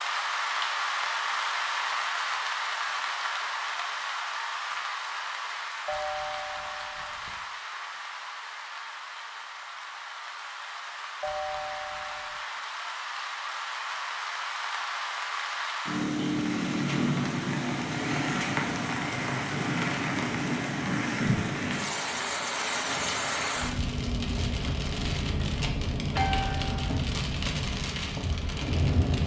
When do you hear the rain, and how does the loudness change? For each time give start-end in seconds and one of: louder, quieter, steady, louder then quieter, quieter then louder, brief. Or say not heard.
0.0-29.2 quieter then louder.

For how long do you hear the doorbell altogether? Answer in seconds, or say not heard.
3 s.